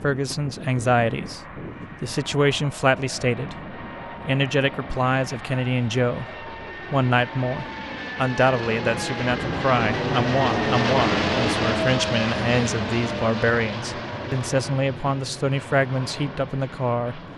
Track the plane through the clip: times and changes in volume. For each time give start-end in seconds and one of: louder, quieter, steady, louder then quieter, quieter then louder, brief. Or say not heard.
0.0-17.3 louder then quieter.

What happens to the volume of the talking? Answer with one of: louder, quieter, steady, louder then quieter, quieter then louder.
steady.